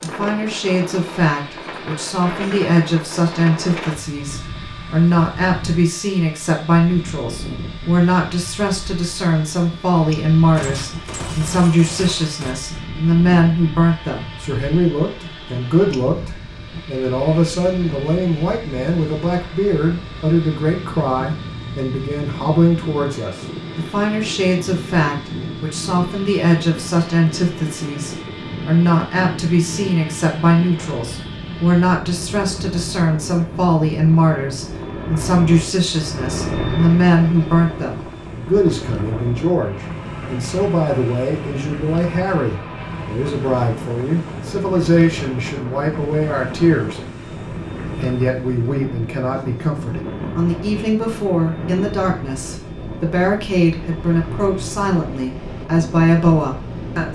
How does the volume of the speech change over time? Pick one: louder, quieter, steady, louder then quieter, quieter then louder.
steady.